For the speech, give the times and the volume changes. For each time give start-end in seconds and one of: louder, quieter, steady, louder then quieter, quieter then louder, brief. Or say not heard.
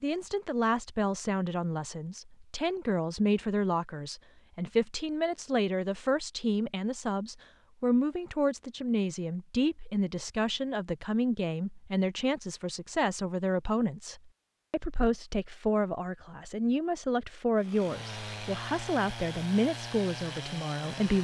0.0-21.1 steady.